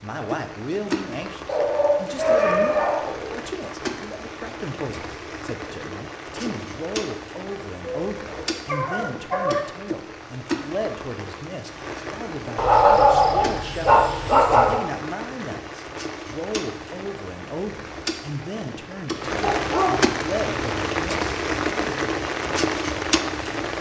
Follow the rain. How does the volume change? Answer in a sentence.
The loudness of the rain goes up.